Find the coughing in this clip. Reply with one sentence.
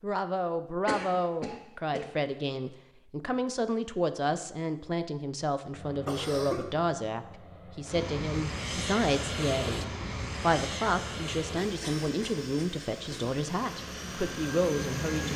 You can hear the coughing from 0.8 to 2.1 s, from 6.0 to 6.7 s and from 11.8 to 13.3 s.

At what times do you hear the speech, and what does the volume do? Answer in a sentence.
The speech can be heard from 0.0 to 15.3 s, at a steady volume.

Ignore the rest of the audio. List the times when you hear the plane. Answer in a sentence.
The plane can be heard from 5.7 to 15.3 s.